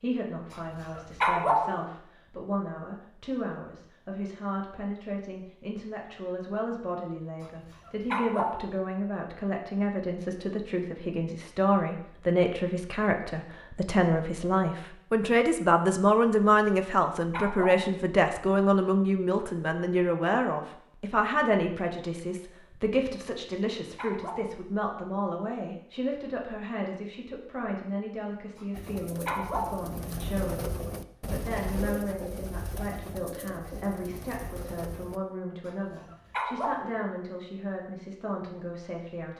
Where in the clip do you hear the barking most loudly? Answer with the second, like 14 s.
1 s.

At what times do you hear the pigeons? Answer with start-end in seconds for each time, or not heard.
28.7-35.2.